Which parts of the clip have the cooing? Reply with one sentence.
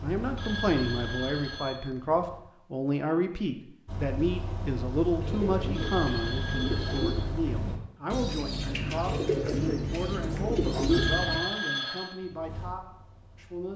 You can hear the cooing from 5.2 to 11.4 s.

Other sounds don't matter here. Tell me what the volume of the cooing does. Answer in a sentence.
The loudness of the cooing goes up.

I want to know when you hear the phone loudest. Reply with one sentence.
The loudest moment of the phone is at 11 seconds.